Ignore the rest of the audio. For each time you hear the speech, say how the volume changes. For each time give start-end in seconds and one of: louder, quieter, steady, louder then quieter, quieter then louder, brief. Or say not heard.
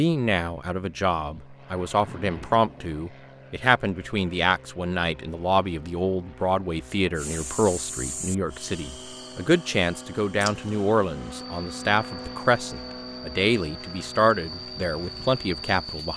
0.0-16.1 steady.